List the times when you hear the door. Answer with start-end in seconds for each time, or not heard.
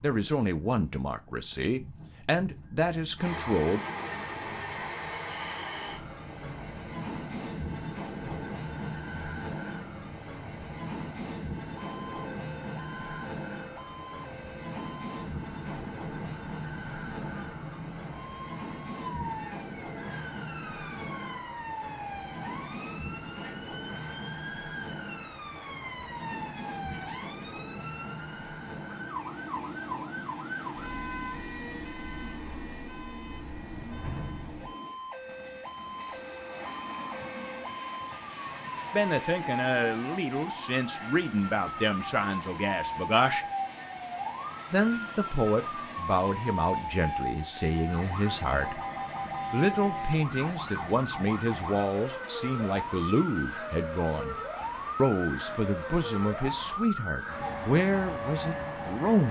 not heard.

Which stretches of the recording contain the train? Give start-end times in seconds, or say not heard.
3.1-56.9.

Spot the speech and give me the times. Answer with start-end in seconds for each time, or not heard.
0.0-3.8, 38.9-43.5, 44.7-48.8, 49.5-54.4, 55.0-59.2.